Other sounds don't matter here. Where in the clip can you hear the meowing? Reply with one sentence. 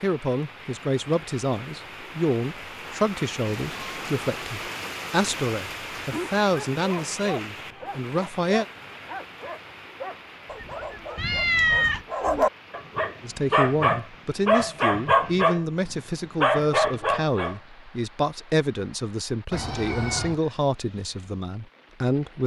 You can hear the meowing from 3.5 to 4.2 s, from 11.2 to 12.1 s and from 19.5 to 20.4 s.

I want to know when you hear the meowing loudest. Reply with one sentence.
The loudest moment of the meowing is at 12 seconds.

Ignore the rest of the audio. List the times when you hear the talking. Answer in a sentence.
The talking can be heard from 0.0 to 8.7 s and from 13.2 to 22.4 s.